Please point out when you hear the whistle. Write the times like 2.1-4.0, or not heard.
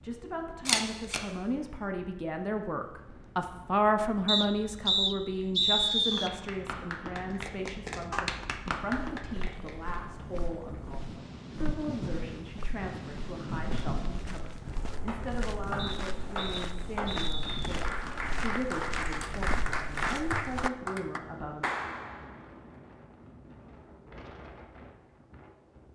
4.2-6.3, 15.8-17.8.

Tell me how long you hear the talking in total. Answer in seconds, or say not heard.
22 s.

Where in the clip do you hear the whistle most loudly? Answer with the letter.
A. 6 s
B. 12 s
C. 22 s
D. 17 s
A.